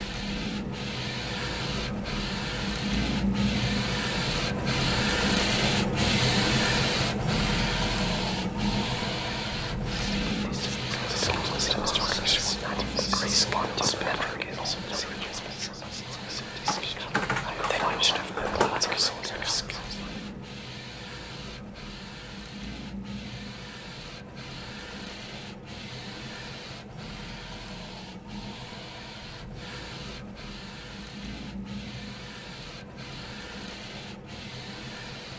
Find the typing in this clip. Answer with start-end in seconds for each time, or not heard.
16.6-18.8.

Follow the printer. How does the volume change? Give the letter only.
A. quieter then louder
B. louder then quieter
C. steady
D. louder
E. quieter
E.